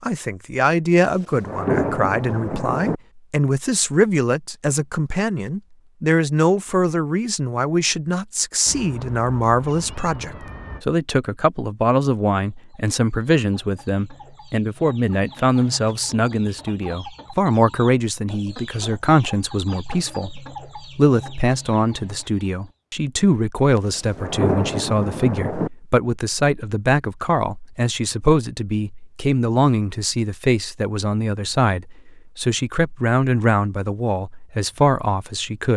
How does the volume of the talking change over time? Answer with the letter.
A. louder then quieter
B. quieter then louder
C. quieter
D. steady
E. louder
D.